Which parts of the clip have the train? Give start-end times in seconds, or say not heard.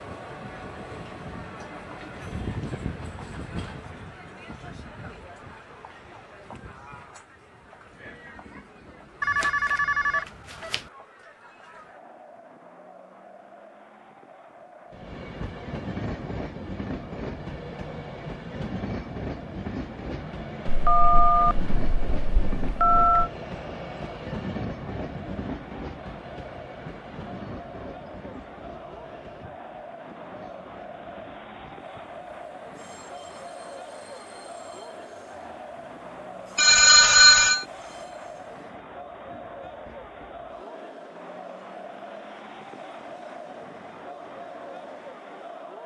0.0-10.3, 14.9-45.8.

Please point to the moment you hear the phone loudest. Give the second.
37 s.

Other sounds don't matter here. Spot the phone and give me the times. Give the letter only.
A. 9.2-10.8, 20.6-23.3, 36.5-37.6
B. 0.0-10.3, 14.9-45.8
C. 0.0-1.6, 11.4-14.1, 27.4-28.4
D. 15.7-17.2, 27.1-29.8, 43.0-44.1
A.